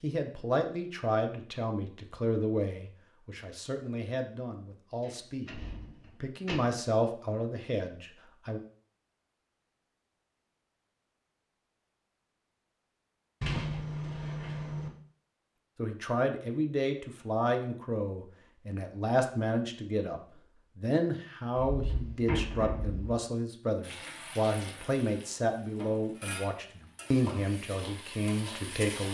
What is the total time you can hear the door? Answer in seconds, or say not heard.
5 s.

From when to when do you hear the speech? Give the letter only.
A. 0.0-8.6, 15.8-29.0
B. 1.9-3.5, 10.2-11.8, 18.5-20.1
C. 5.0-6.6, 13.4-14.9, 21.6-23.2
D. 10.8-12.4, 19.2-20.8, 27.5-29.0
A.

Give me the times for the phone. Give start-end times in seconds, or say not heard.
not heard.